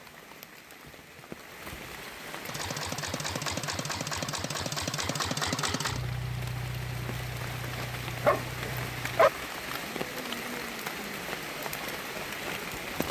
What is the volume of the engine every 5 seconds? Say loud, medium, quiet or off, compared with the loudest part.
loud, loud, off.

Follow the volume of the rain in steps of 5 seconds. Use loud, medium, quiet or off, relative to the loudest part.
medium, loud, loud.